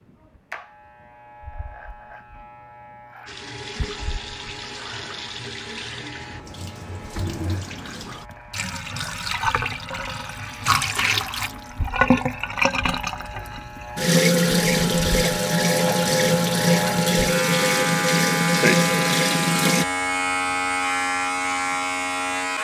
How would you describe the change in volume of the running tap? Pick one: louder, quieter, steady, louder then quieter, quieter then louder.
louder.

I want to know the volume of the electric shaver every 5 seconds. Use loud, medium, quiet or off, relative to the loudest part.
quiet, quiet, quiet, loud, loud.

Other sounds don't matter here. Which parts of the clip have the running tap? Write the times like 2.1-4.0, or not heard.
3.2-19.9.